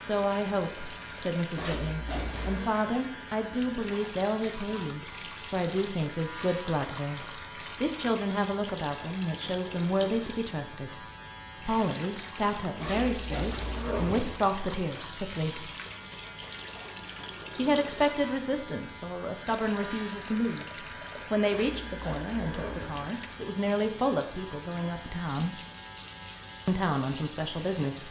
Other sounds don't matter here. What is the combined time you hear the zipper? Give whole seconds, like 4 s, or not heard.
4 s.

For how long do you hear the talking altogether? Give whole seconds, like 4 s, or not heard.
25 s.